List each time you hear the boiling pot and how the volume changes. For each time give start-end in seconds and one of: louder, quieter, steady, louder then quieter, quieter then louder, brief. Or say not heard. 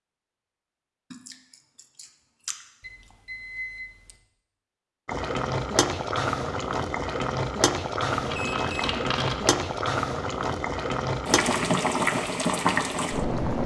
5.0-13.6 steady.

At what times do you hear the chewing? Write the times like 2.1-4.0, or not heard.
1.1-2.6, 8.1-9.6.